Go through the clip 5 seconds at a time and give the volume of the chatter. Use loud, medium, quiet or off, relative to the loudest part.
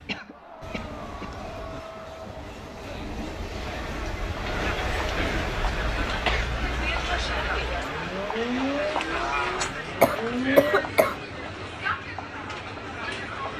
medium, loud, loud.